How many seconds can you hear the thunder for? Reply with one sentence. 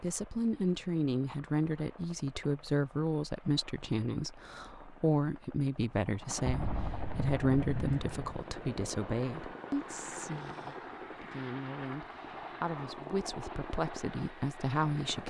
The thunder can be heard for 2 seconds in total.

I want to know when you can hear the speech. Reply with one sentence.
You can hear the speech from 0.0 to 15.2 s.